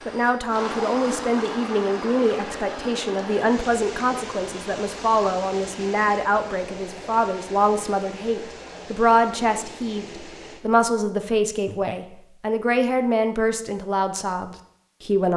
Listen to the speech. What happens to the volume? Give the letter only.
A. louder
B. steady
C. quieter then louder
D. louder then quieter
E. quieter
B.